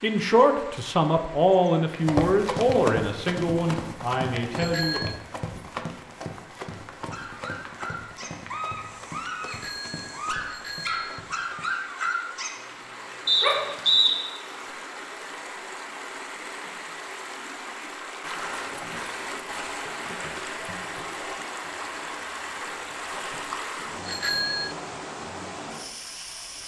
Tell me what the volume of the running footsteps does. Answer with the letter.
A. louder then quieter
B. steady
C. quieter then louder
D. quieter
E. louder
D.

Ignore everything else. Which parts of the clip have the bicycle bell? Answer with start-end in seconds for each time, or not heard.
4.5-5.2, 9.4-11.2, 24.1-24.8.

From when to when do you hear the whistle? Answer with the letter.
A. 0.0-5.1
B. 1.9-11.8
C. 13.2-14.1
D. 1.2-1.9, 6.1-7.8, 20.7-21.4
C.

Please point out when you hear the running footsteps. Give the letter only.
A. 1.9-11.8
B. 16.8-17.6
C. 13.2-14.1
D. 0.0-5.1
A.